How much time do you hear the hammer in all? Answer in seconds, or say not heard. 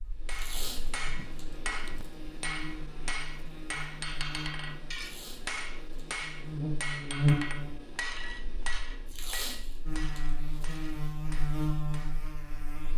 12 s.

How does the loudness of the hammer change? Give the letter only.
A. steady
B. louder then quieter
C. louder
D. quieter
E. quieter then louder
D.